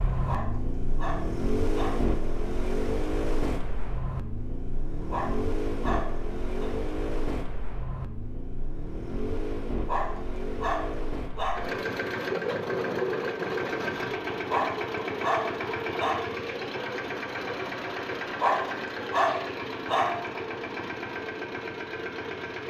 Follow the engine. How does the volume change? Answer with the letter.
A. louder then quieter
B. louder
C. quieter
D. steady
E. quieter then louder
D.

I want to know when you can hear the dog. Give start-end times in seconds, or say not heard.
0.1-2.1, 5.0-6.7, 9.8-11.8, 14.4-16.2, 18.3-20.3.